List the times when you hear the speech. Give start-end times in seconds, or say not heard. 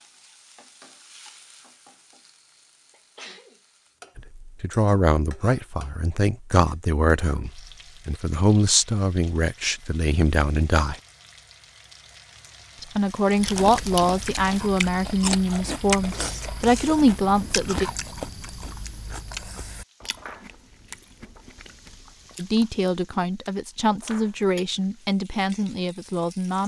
4.2-10.9, 12.8-17.9, 22.4-26.6.